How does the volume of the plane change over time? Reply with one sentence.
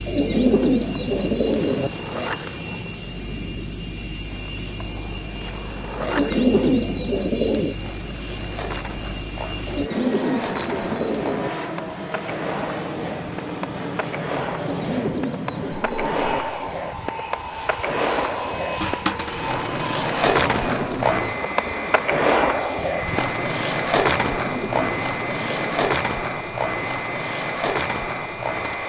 The loudness of the plane stays about the same.